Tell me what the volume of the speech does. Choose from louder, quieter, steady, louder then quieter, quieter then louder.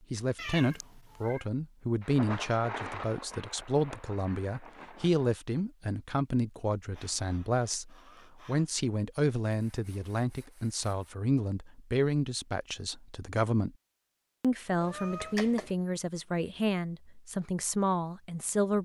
steady.